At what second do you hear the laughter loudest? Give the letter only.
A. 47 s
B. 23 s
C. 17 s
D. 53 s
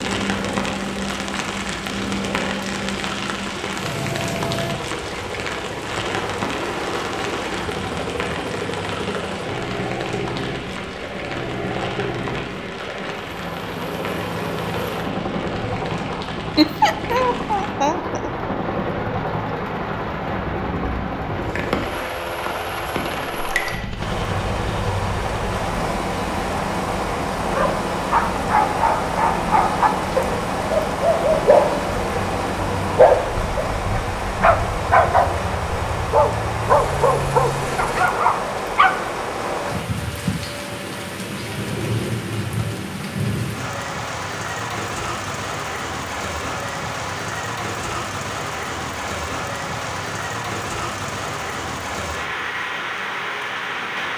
C.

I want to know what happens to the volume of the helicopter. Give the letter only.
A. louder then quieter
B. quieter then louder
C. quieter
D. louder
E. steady
E.